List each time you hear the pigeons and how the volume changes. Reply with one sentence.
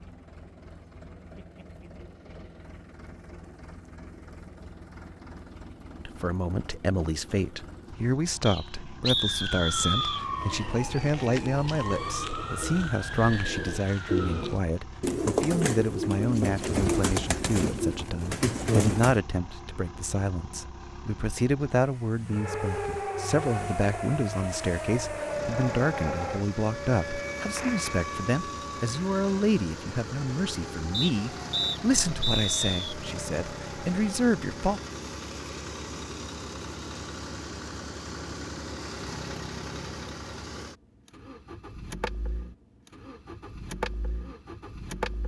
The pigeons can be heard from 10.3 to 19.2 s, getting louder.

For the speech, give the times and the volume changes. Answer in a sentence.
The speech can be heard from 6.0 to 34.8 s, at a steady volume.